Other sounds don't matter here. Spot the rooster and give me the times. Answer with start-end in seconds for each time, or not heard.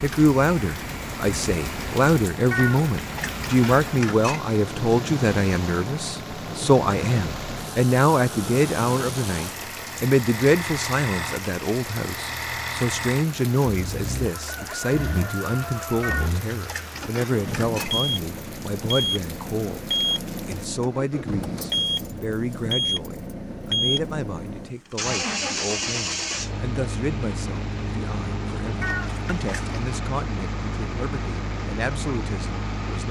14.3-16.3.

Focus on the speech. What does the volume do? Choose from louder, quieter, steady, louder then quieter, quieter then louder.
quieter.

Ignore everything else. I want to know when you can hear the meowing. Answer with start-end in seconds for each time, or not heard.
2.5-4.4, 16.0-17.9, 28.8-29.8.